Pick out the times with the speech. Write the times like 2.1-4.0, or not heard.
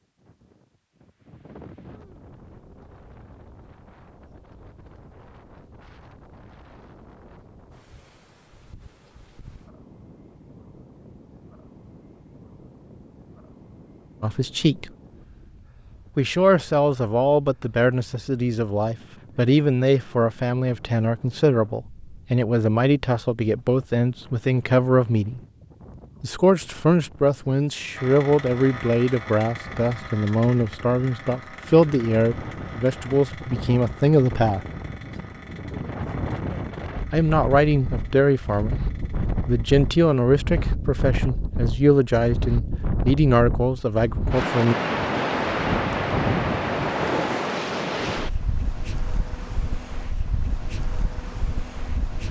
14.2-14.9, 16.1-25.4, 26.2-34.6, 37.1-38.9, 39.5-44.8.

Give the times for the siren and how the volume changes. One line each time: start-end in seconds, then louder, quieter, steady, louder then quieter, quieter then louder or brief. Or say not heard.
not heard.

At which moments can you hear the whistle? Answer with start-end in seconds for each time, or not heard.
not heard.